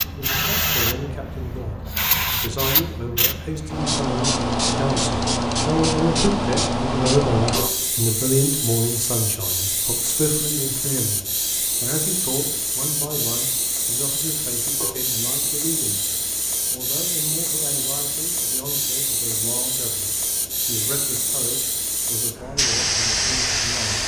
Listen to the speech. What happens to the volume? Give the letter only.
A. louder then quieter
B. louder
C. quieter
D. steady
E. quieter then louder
A.